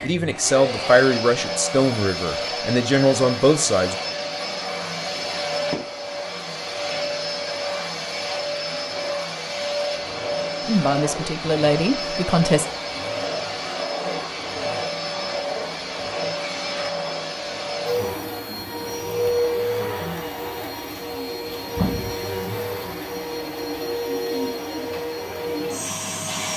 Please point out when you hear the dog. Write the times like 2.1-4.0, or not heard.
not heard.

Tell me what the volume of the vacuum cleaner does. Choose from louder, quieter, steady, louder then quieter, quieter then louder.
steady.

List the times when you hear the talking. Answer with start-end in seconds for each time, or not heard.
0.0-4.0, 10.6-12.7.